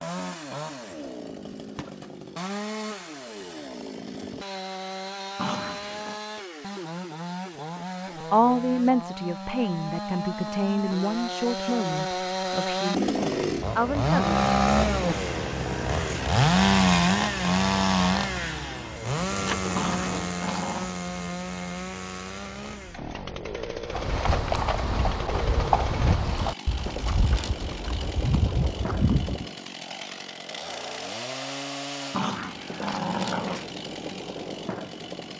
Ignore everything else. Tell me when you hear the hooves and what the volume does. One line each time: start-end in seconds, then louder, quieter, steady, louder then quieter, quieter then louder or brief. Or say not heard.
23.9-29.4 quieter then louder.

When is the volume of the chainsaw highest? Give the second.
17 s.